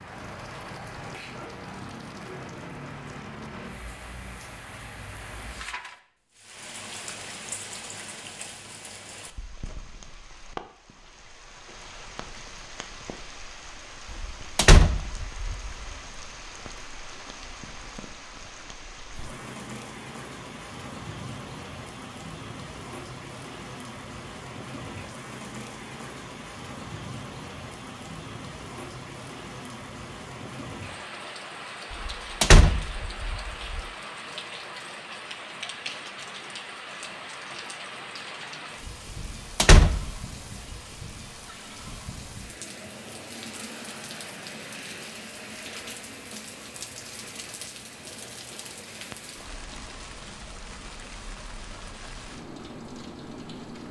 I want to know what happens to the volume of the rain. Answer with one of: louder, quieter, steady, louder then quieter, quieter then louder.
steady.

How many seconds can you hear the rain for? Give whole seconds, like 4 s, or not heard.
54 s.